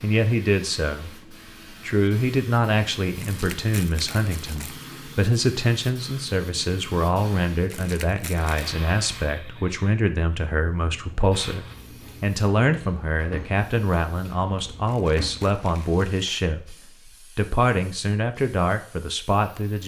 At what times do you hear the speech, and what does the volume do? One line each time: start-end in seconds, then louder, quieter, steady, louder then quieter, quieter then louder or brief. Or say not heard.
0.0-19.8 steady.